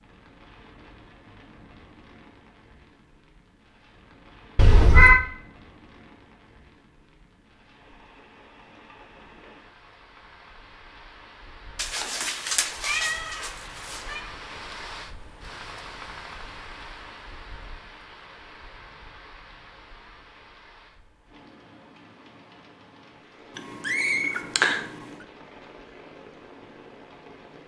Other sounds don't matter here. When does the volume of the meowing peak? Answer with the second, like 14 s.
5 s.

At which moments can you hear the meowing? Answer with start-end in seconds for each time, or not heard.
4.5-5.2, 11.8-14.2, 23.6-24.8.